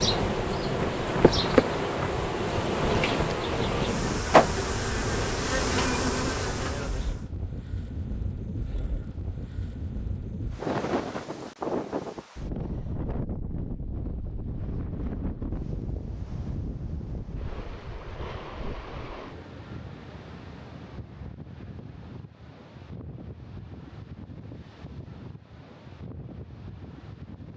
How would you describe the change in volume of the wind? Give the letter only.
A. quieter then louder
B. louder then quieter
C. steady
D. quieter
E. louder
D.